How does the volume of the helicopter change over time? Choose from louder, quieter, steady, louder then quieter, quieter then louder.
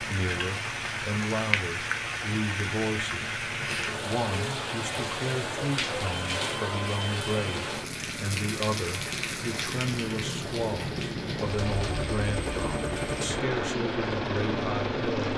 louder.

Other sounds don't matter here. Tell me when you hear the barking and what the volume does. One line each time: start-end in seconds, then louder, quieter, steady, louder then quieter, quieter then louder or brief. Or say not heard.
not heard.